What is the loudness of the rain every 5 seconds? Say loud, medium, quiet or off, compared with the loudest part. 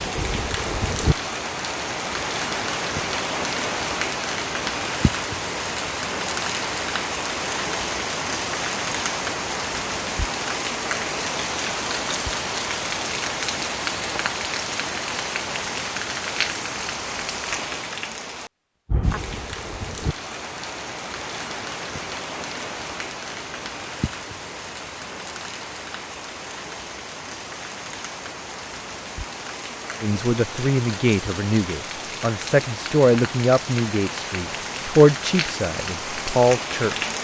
loud, loud, loud, loud, medium, medium, medium, loud.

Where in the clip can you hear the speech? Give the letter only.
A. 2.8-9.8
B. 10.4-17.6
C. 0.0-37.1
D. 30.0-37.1
D.